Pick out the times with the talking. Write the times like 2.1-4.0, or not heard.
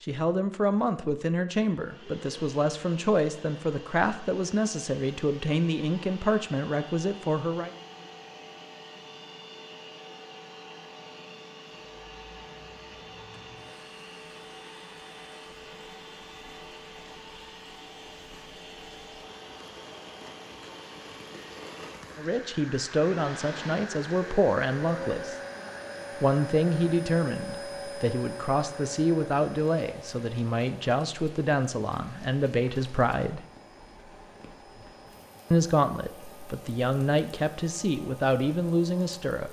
0.0-7.7, 22.1-25.4, 26.2-33.4, 35.5-39.4.